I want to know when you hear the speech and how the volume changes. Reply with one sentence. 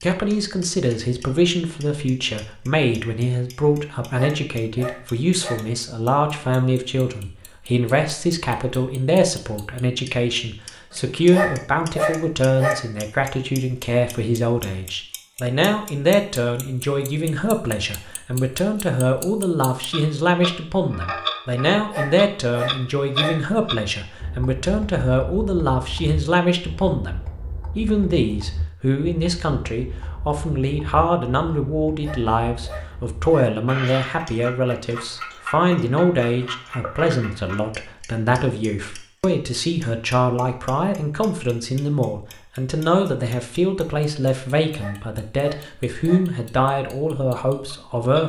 You can hear the speech from 0.0 to 48.2 s, at a steady volume.